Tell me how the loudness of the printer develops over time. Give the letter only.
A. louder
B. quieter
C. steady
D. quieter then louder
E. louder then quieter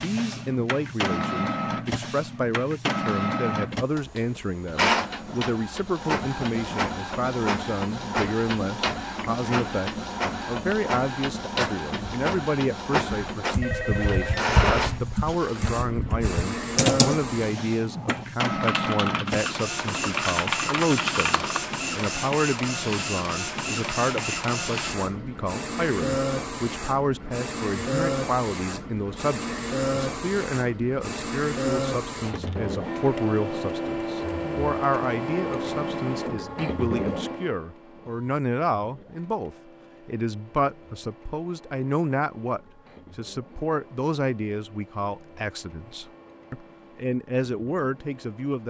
B.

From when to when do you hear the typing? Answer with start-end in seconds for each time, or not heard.
13.1-21.7.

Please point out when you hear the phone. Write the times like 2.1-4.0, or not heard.
13.6-15.0.